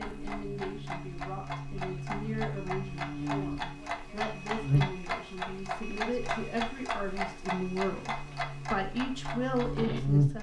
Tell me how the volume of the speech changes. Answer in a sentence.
The loudness of the speech goes up.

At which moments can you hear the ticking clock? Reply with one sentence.
The ticking clock can be heard from 0.0 to 10.3 s.